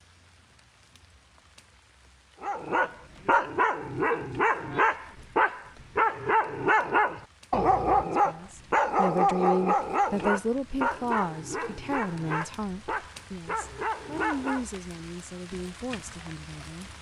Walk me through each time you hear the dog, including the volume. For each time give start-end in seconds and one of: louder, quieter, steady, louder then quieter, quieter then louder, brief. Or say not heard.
2.4-14.7 quieter.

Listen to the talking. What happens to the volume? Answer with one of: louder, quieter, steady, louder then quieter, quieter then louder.
quieter.